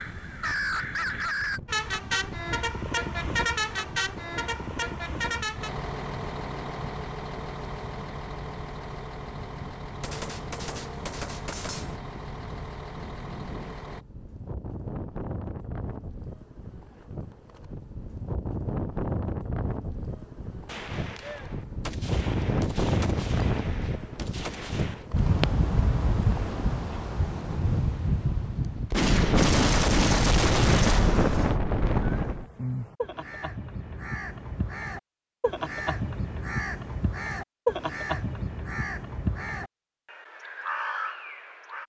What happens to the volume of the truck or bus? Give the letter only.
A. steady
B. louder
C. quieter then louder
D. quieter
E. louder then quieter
D.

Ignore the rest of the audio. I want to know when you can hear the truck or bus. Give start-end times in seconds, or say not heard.
1.6-14.1.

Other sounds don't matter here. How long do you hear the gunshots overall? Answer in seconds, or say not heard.
9 s.